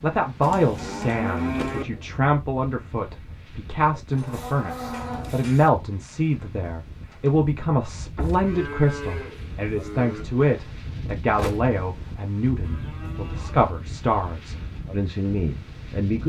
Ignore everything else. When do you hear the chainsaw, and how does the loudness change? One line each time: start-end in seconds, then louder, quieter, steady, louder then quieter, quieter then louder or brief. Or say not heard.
not heard.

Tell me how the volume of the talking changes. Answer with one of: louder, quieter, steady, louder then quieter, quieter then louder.
steady.